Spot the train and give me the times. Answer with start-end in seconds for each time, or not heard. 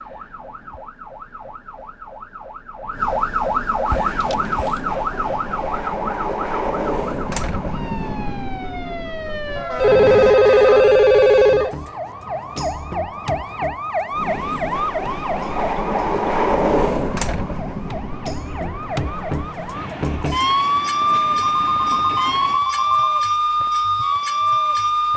3.9-10.3, 14.1-22.6.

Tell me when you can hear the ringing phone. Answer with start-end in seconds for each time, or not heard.
4.2-4.8, 9.8-11.8, 21.4-23.2.